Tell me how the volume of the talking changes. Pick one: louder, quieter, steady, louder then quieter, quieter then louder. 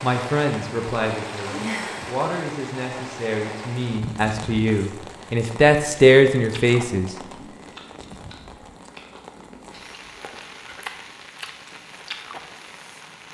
louder.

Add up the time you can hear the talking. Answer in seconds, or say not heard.
7 s.